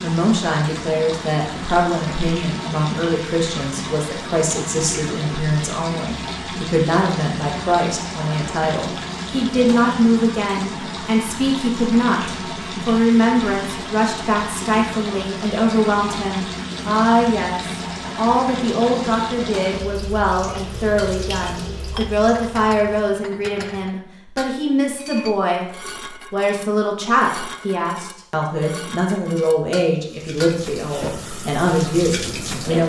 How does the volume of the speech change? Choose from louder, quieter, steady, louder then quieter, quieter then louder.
steady.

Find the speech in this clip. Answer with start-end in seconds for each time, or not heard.
0.0-25.6, 26.3-32.8.